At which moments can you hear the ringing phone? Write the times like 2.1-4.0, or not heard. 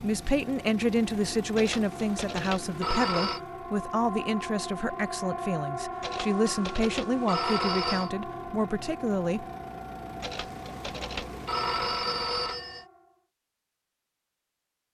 1.6-3.4, 6.0-8.1, 10.2-12.8.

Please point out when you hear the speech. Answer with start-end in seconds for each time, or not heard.
0.0-9.4.